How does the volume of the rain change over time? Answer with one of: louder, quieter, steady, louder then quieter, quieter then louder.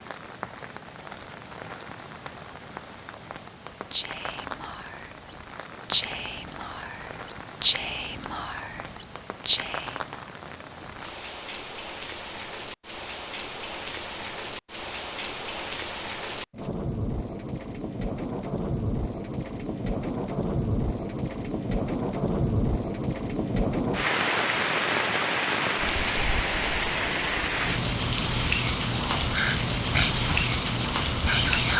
louder.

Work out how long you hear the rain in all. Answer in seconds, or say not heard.
32 s.